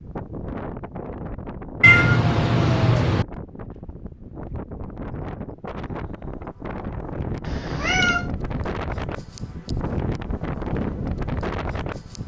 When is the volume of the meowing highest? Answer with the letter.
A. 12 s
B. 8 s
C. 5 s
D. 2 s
D.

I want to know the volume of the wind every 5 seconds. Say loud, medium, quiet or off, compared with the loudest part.
medium, loud, loud.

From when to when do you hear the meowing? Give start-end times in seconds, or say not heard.
1.8-3.2, 7.5-8.3.